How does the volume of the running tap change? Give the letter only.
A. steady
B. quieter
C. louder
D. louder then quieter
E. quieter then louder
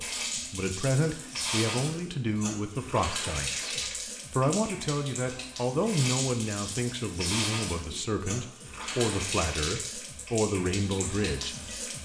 A.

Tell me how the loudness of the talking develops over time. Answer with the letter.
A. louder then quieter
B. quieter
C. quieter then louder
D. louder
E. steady
E.